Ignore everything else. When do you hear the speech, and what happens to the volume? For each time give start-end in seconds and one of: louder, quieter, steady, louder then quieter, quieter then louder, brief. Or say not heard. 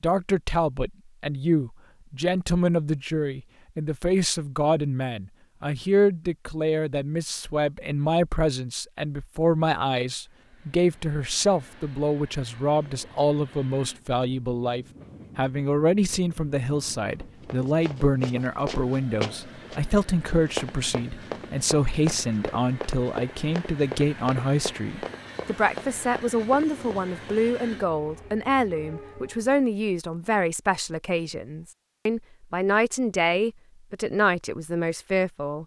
0.0-35.6 steady.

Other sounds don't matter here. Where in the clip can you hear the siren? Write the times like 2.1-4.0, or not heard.
not heard.